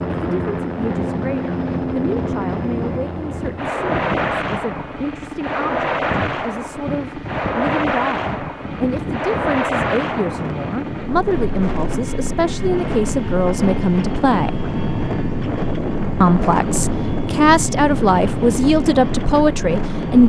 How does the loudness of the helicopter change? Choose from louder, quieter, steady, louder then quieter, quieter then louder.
quieter.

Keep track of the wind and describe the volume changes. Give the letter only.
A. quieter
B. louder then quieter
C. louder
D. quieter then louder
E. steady
C.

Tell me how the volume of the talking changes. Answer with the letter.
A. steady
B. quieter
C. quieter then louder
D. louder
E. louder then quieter
D.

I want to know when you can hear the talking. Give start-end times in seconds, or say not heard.
0.1-14.7, 16.2-20.2.